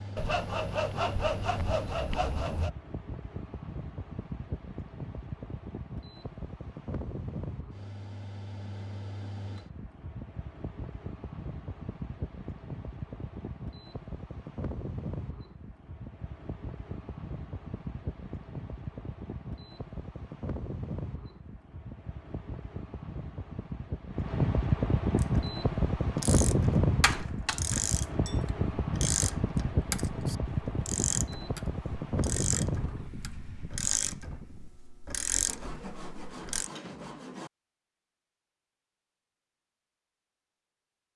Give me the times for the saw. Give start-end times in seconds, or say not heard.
0.1-2.7, 35.5-37.5.